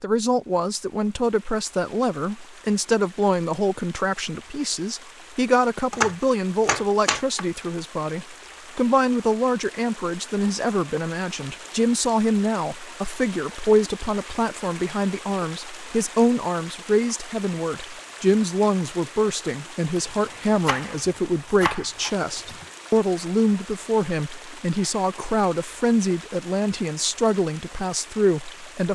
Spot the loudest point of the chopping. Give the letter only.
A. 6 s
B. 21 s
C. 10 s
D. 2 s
A.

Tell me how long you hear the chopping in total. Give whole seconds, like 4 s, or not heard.
4 s.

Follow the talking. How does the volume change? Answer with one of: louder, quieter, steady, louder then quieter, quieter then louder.
steady.